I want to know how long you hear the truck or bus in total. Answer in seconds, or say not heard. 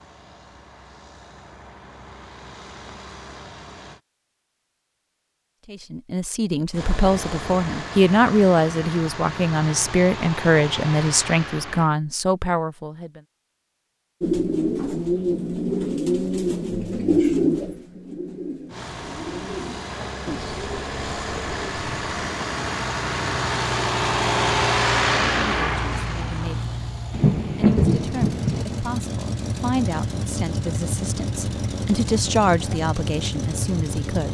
25 s.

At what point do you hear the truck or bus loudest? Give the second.
25 s.